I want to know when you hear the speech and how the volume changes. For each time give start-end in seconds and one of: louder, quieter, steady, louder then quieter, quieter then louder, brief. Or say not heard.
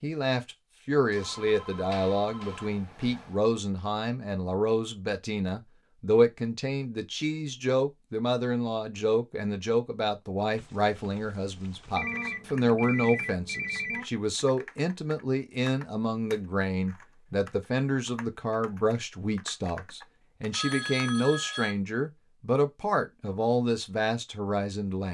0.0-25.0 steady.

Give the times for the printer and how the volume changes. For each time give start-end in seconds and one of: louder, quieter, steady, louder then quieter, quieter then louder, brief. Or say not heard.
not heard.